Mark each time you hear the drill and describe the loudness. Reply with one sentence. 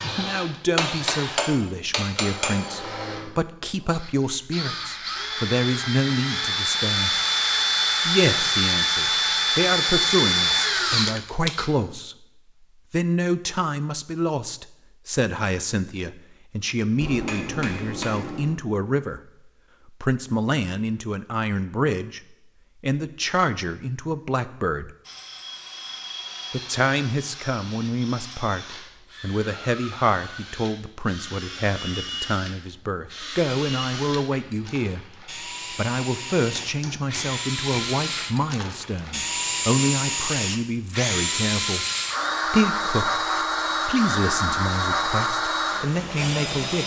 The drill can be heard from 0.0 to 11.7 s, getting louder; and from 25.1 to 46.8 s, getting louder.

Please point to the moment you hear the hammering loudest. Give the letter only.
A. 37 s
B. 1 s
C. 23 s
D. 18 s
B.